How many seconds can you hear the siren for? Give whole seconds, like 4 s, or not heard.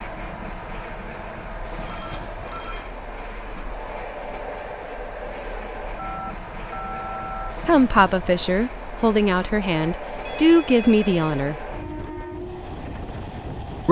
not heard.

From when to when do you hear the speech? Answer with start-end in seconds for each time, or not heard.
7.7-11.6.